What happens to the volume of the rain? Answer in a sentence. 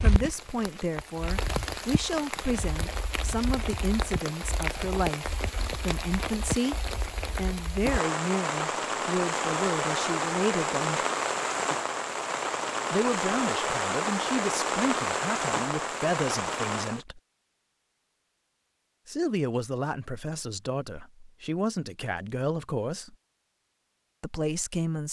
The volume of the rain goes up.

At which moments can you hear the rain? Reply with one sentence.
The rain can be heard from 0.0 to 17.0 s.